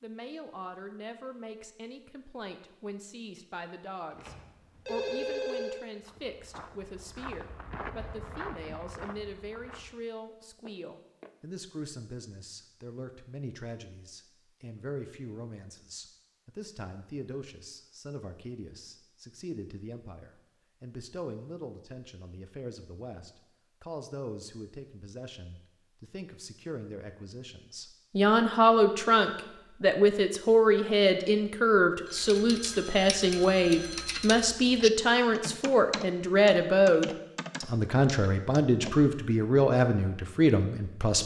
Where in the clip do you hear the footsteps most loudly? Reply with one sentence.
The volume of the footsteps peaks at 8 seconds.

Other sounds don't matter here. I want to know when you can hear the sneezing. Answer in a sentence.
You can't hear the sneezing here.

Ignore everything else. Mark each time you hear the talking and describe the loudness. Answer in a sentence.
You can hear the talking from 0.0 to 41.2 s, getting louder.